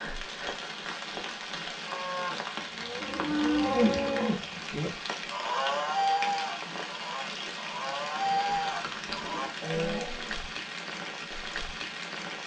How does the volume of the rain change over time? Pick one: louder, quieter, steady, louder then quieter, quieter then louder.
steady.